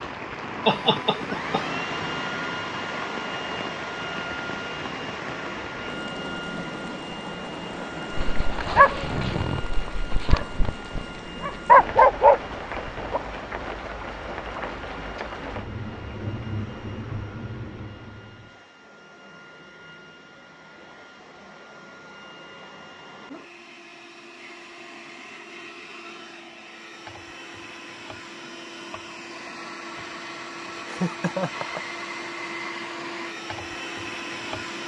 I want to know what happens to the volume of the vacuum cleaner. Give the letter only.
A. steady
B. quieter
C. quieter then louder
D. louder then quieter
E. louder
C.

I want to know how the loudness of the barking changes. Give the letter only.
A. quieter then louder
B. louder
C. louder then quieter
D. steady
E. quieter
A.